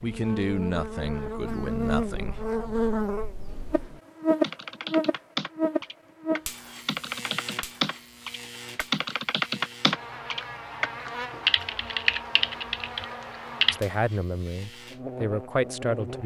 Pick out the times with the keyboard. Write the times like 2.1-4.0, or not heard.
3.5-13.8.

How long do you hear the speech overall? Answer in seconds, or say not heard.
5 s.